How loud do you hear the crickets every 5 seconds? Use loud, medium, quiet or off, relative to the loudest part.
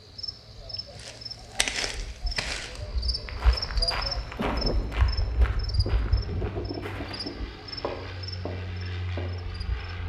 loud, medium.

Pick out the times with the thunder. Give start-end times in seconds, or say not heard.
4.3-7.5.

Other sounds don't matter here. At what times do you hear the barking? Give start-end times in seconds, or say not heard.
not heard.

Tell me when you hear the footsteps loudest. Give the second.
2 s.